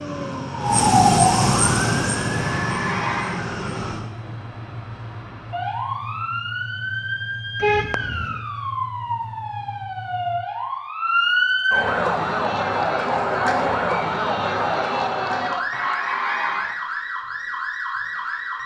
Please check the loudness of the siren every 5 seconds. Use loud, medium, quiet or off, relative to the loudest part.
loud, medium, loud, medium.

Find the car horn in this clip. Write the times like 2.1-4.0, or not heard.
7.6-8.4.